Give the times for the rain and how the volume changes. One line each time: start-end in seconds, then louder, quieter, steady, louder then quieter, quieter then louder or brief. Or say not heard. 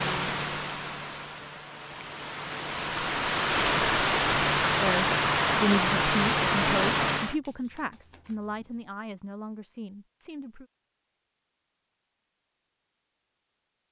0.0-7.3 louder.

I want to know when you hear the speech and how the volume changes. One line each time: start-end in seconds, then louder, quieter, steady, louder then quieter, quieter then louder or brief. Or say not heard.
4.8-10.7 quieter.